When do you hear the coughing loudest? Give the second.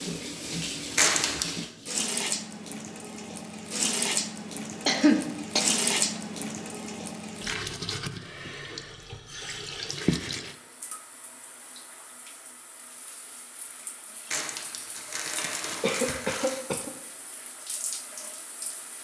5 s.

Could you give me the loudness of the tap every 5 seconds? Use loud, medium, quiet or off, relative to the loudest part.
loud, loud, medium, medium.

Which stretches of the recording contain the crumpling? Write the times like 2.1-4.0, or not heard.
0.9-1.6, 14.3-16.6.